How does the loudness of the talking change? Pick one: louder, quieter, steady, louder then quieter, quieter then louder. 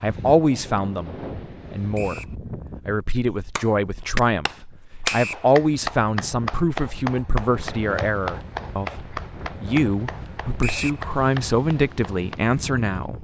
steady.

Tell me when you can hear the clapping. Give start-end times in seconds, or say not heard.
3.4-12.4.